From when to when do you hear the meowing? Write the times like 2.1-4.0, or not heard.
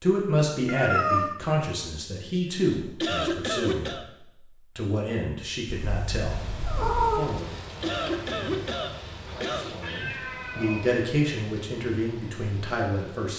0.7-1.4, 5.7-7.3, 9.2-10.8.